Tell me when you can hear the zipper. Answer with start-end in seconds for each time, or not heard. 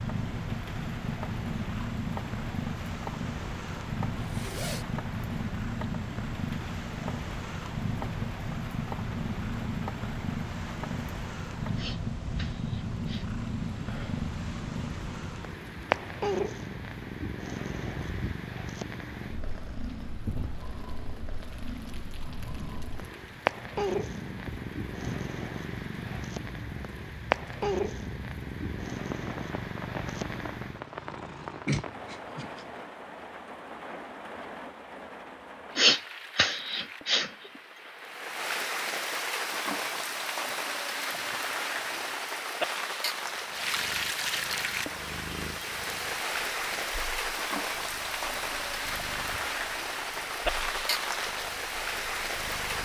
4.2-4.8.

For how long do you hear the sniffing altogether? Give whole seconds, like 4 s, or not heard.
4 s.